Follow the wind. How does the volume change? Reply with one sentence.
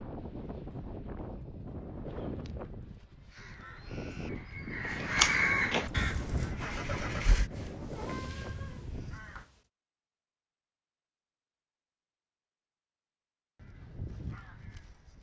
The volume of the wind stays about the same.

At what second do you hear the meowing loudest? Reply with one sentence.
The loudest moment of the meowing is at 8 seconds.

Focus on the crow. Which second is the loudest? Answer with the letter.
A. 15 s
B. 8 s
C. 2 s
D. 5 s
D.